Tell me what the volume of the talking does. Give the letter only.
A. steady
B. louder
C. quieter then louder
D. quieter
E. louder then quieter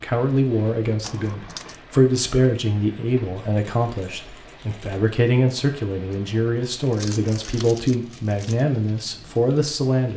A.